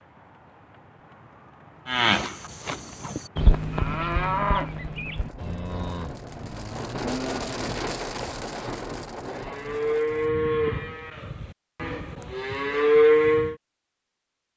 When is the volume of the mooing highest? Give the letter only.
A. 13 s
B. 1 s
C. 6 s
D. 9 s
A.